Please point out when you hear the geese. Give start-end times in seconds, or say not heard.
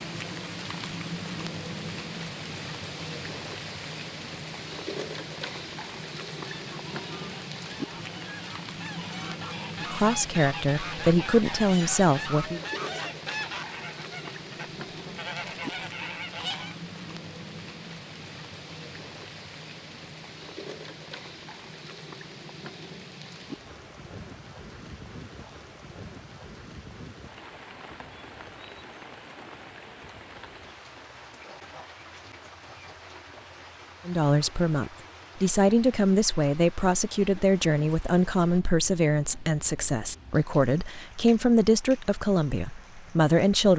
6.5-16.8.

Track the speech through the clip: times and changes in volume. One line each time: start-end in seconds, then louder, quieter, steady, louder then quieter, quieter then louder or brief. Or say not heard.
9.8-12.6 brief
34.0-43.7 steady.